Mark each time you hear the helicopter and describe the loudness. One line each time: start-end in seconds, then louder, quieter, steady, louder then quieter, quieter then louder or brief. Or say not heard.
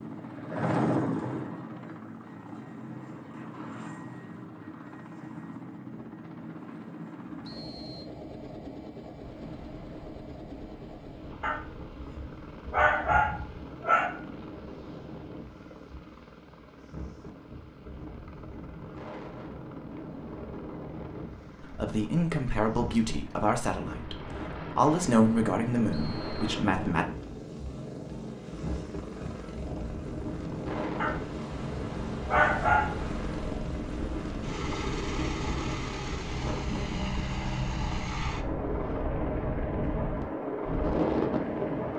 0.0-41.9 quieter then louder.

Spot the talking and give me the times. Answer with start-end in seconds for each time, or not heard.
21.6-27.1.